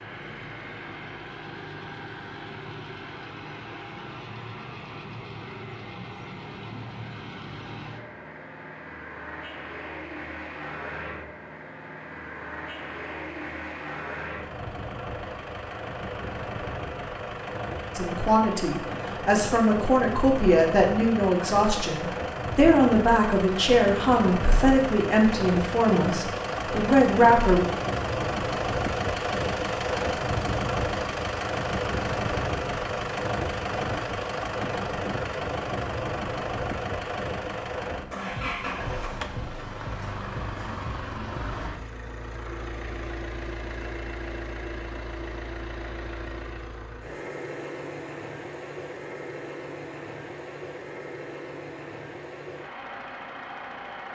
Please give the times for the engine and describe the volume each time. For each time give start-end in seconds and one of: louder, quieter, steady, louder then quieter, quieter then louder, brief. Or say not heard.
0.0-54.1 louder then quieter.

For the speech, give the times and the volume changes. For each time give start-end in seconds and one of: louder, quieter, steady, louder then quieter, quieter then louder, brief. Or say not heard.
17.9-27.6 steady.